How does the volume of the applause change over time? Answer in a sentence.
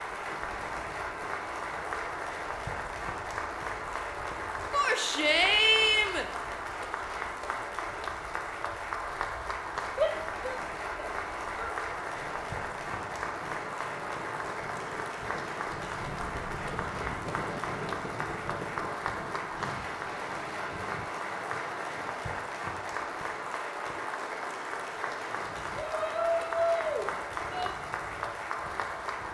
The volume of the applause stays about the same.